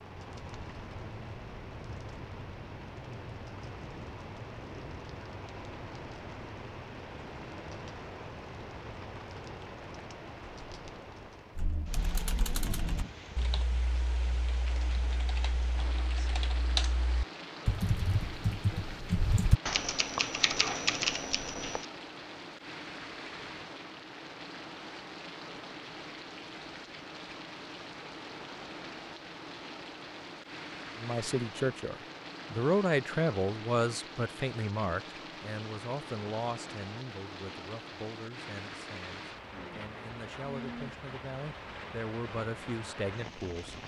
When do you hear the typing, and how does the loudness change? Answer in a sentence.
You can hear the typing from 11.6 to 21.9 s, getting quieter then louder.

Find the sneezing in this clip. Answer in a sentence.
You can't hear the sneezing here.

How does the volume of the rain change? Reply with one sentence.
The volume of the rain stays about the same.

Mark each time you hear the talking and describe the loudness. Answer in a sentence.
You can hear the talking from 30.9 to 43.8 s, getting quieter then louder.